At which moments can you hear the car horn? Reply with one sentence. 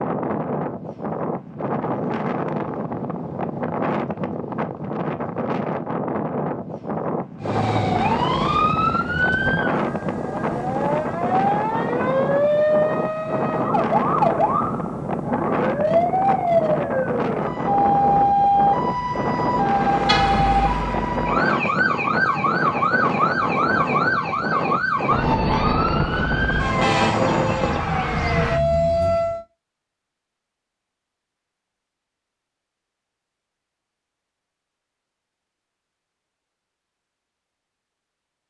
The car horn can be heard from 20.1 to 20.6 s.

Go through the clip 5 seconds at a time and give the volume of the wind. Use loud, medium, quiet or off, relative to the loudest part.
loud, loud, loud, loud, loud, loud, off, off.